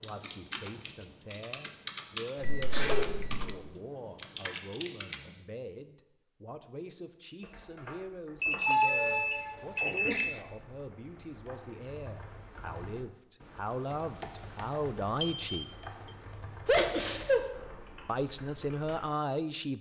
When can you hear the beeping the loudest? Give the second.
9 s.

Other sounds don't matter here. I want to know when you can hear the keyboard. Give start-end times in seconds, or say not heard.
0.0-5.3, 7.4-19.1.